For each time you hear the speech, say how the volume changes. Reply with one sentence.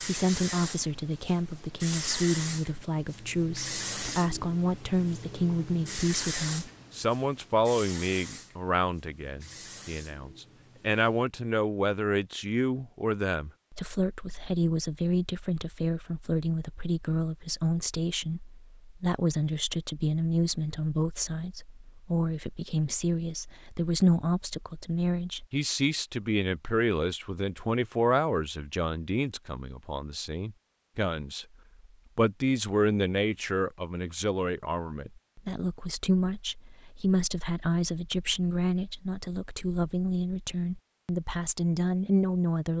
The speech can be heard from 0.0 to 31.4 s, at a steady volume; and from 32.1 to 42.7 s, at a steady volume.